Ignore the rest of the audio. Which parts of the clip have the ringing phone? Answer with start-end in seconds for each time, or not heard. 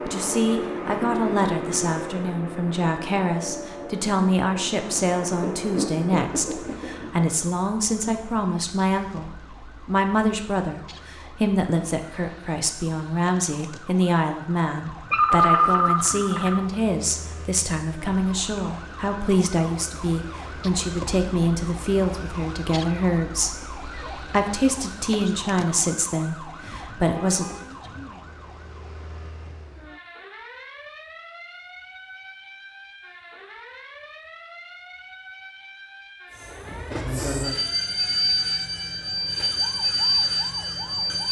15.1-16.6.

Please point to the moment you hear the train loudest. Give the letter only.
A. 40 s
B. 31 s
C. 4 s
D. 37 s
A.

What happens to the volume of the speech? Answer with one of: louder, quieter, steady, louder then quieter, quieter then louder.
steady.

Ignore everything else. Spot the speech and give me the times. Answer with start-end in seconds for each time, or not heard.
0.1-27.4.